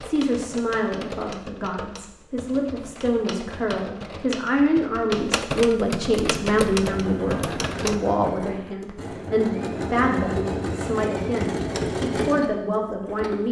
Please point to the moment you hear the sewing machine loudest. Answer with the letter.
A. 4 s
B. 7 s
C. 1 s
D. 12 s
D.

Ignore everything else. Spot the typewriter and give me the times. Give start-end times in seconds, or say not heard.
0.0-8.0.